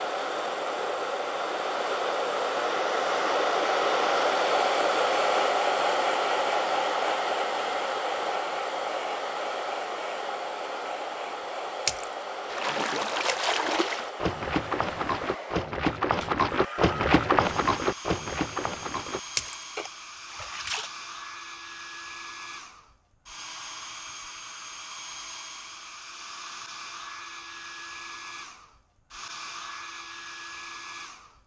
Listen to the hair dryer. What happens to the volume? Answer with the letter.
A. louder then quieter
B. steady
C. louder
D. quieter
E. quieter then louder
D.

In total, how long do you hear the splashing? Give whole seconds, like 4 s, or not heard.
9 s.